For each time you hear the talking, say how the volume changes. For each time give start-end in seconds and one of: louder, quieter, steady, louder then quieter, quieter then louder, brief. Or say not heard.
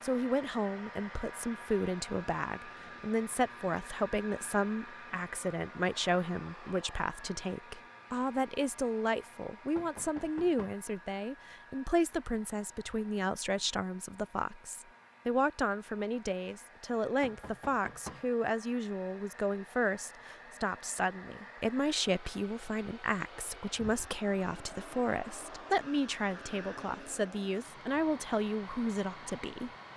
0.0-29.7 steady.